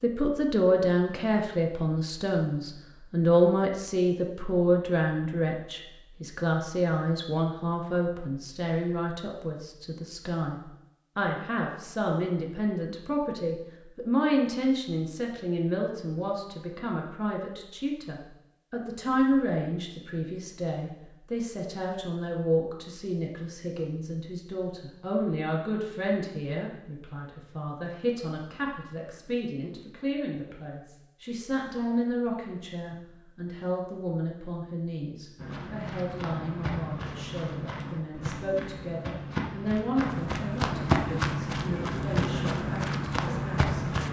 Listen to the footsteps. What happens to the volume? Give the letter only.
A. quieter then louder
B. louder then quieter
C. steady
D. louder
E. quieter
D.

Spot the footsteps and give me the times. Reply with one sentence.
You can hear the footsteps from 35.4 to 44.0 s.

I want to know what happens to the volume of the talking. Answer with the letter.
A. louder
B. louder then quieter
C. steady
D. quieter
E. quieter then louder
D.